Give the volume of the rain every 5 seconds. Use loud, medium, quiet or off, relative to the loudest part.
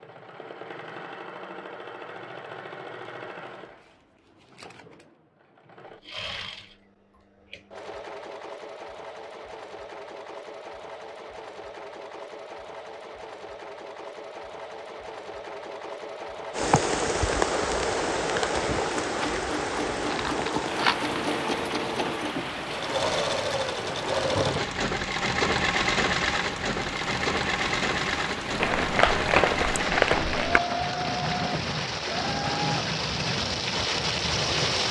off, off, off, loud, medium, medium, loud.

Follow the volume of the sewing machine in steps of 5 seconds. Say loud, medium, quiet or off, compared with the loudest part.
quiet, quiet, quiet, medium, loud, loud, medium.